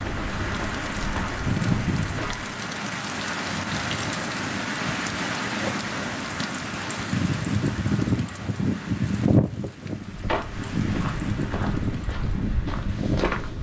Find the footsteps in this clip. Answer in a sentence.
The footsteps can be heard from 0.0 to 2.5 s and from 10.0 to 13.5 s.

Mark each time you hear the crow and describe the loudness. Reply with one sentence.
The crow can't be heard in this clip.